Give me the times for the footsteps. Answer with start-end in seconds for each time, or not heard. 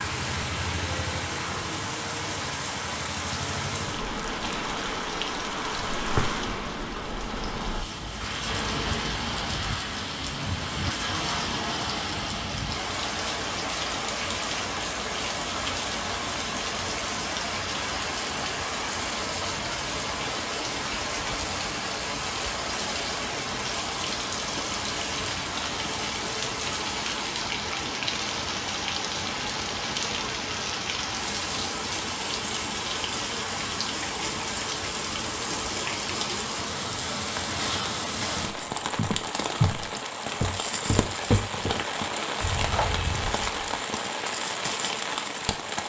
38.4-43.7.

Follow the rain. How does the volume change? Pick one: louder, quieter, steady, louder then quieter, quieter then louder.
steady.